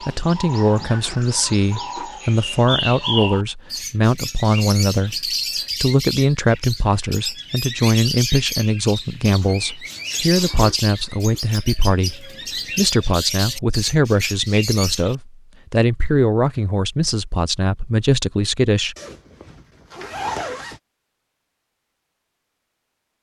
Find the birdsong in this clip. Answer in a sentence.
You can hear the birdsong from 0.0 to 15.2 s.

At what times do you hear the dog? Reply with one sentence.
The dog can't be heard in this clip.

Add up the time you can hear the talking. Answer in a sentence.
You can hear the talking for 19 seconds altogether.